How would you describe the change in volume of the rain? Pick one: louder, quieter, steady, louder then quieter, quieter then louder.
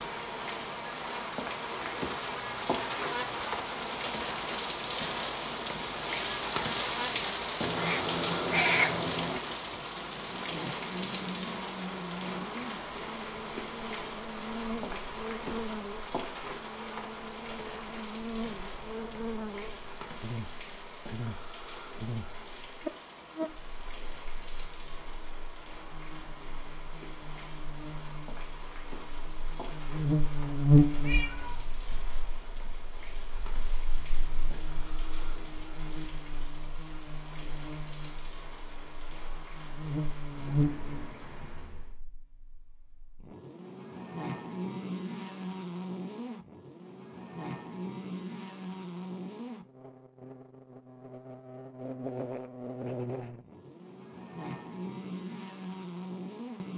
quieter.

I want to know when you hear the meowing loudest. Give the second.
9 s.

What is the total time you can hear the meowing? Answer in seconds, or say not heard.
3 s.